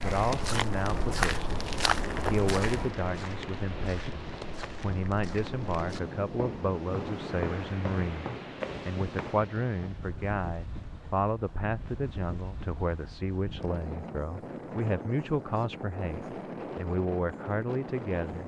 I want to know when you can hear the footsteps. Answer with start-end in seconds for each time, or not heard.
0.0-9.4.